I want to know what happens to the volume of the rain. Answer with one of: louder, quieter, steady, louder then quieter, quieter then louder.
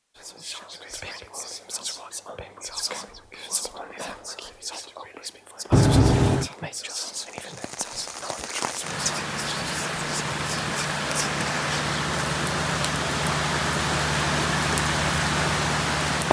louder.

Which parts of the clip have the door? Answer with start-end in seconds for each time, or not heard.
5.7-6.5.